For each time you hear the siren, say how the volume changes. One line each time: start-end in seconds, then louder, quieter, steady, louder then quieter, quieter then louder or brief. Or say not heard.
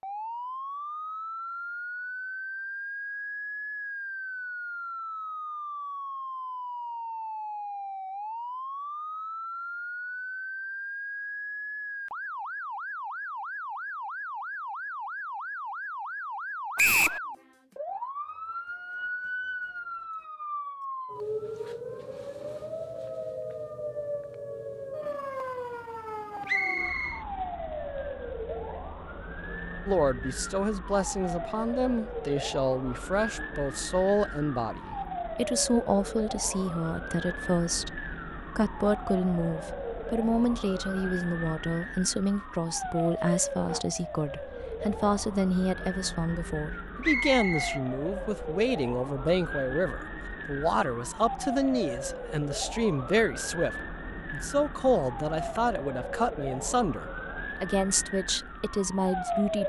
0.0-59.6 steady.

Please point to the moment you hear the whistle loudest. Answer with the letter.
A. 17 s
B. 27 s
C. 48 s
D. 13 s
A.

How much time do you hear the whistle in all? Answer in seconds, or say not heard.
2 s.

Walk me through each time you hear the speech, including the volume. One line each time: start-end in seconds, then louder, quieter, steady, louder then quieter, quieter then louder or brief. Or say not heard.
29.9-59.6 steady.